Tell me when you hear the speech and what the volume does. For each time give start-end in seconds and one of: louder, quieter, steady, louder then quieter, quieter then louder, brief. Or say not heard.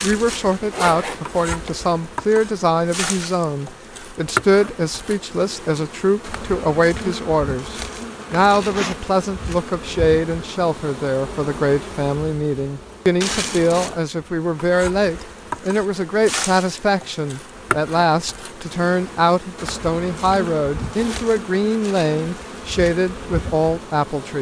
0.0-24.3 steady.